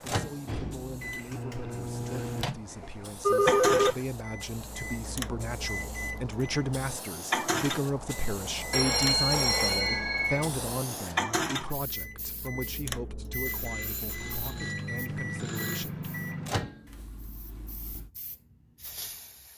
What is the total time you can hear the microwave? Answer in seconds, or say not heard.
18 s.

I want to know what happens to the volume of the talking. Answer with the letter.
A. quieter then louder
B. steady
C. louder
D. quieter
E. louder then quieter
E.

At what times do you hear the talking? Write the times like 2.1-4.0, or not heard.
0.0-16.1.